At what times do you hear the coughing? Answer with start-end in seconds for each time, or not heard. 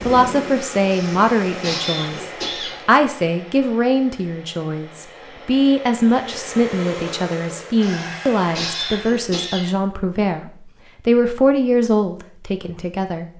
0.9-2.8, 7.8-9.7.